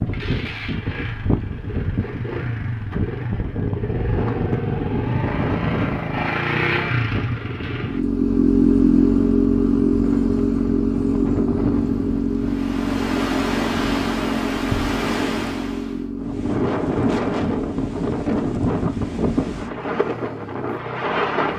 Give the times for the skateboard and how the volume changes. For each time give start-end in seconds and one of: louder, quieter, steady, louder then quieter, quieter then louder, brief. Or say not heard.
not heard.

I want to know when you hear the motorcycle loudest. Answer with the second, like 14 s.
9 s.